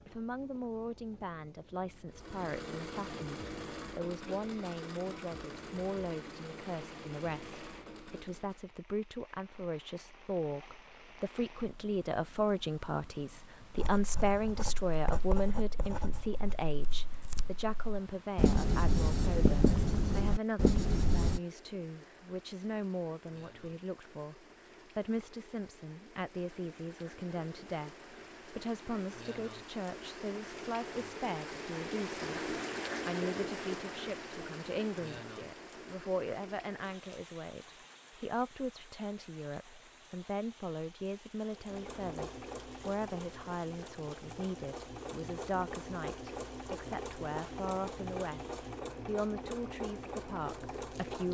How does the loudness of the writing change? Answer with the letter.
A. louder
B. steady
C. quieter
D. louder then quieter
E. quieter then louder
A.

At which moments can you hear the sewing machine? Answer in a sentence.
The sewing machine can be heard from 2.1 to 8.7 s and from 41.5 to 51.3 s.